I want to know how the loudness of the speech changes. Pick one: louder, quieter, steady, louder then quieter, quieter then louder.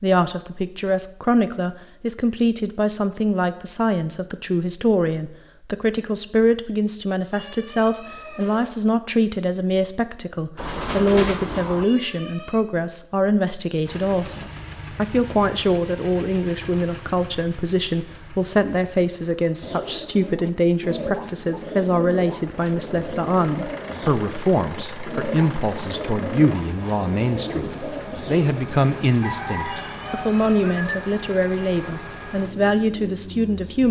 steady.